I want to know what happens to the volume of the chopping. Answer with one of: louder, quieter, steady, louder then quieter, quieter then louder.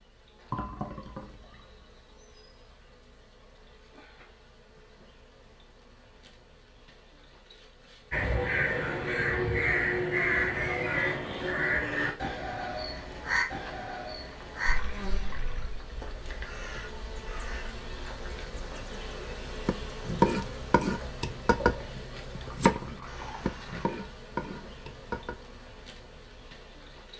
quieter.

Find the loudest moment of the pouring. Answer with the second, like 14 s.
1 s.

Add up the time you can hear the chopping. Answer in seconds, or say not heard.
6 s.